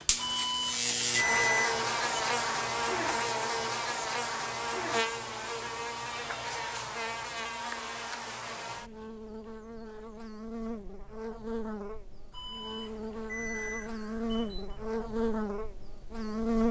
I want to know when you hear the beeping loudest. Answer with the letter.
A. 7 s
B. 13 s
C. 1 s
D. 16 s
C.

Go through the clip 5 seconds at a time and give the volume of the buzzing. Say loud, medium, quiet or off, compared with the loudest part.
loud, medium, medium, loud.